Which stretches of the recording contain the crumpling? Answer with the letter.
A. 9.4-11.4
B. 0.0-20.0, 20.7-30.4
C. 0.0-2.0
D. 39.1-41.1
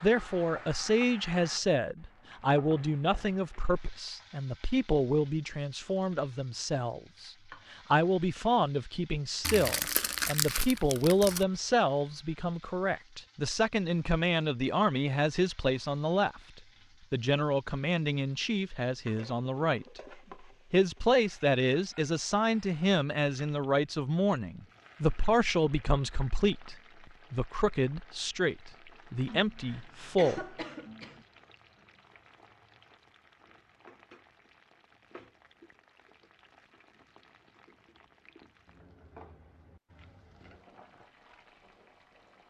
A.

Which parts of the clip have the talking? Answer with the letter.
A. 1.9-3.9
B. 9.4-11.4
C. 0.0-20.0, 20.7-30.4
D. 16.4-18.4
C.